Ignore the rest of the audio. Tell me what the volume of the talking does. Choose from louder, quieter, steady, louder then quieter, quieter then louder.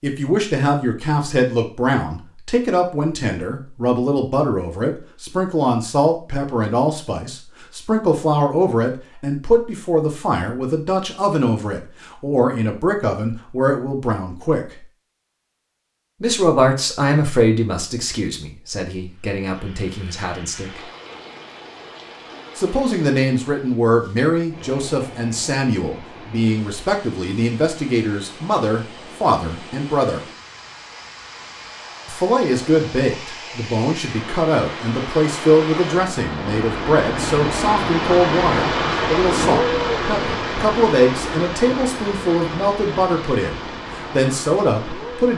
steady.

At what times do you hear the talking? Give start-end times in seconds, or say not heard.
0.0-14.8, 16.2-20.8, 22.6-30.2, 32.0-45.3.